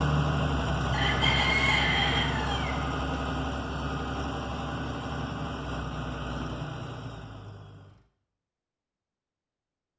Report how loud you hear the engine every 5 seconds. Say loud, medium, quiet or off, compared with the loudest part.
loud, medium.